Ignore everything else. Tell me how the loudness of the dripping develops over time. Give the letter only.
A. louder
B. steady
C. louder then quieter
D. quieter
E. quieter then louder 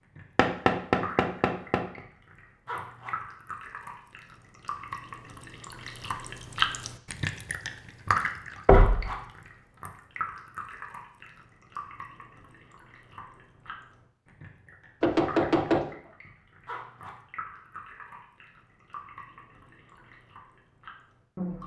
C.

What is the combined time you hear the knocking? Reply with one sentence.
The knocking can be heard for 3 seconds in total.